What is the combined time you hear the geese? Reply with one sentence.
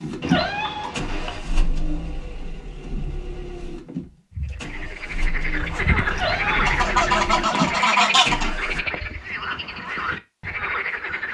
You can hear the geese for 2 seconds altogether.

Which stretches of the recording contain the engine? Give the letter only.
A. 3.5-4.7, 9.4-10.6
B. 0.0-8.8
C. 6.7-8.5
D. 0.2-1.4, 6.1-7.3
B.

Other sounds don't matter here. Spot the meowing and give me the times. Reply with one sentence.
You can hear the meowing from 0.2 to 1.4 s and from 6.1 to 7.3 s.